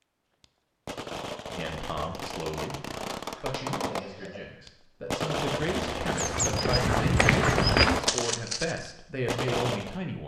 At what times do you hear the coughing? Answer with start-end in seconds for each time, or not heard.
3.5-4.5.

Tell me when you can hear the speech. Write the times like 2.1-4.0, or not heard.
1.6-10.2.